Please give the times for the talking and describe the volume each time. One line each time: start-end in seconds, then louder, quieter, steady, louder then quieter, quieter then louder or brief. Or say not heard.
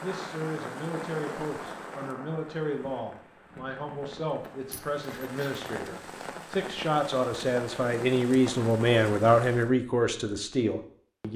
0.0-11.3 louder.